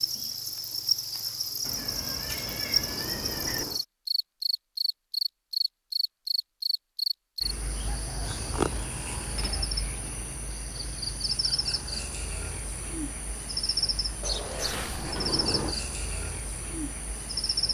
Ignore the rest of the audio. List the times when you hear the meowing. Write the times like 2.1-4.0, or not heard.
1.6-3.6, 8.2-8.9, 14.2-15.1.